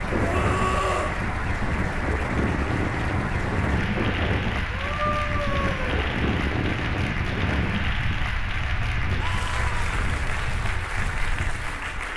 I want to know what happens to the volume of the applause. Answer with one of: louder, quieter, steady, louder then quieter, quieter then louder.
steady.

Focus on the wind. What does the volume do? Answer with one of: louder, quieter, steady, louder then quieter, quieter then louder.
quieter.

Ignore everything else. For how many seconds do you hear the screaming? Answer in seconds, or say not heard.
3 s.